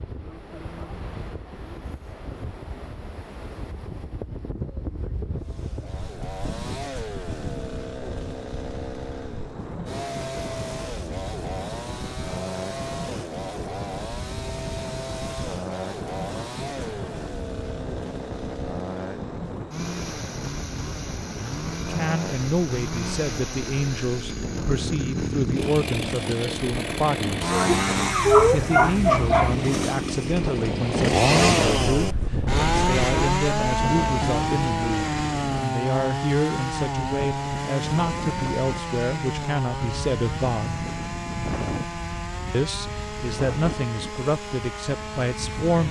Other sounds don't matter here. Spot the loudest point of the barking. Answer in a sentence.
The volume of the barking peaks at 28 seconds.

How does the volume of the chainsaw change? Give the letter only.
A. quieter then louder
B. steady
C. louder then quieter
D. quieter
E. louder
C.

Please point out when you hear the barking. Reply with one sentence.
You can hear the barking from 27.7 to 29.6 s.